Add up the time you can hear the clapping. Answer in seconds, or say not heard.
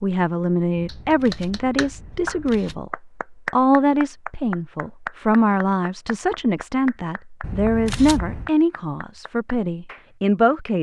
10 s.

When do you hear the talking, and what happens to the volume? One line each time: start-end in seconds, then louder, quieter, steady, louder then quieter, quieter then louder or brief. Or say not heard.
0.0-10.7 steady.